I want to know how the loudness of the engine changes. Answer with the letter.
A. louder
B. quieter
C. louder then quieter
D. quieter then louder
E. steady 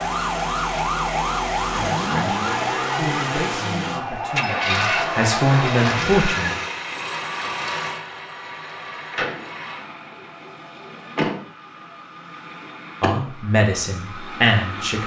B.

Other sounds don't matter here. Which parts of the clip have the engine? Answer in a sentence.
The engine can be heard from 0.0 to 15.0 s.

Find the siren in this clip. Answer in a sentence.
The siren can be heard from 0.0 to 6.2 s.